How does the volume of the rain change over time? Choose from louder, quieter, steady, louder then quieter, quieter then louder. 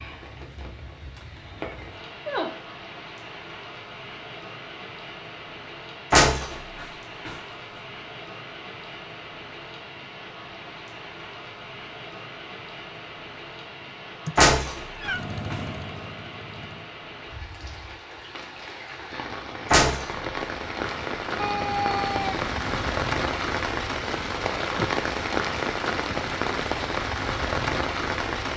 louder.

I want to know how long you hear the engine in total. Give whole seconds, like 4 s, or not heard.
2 s.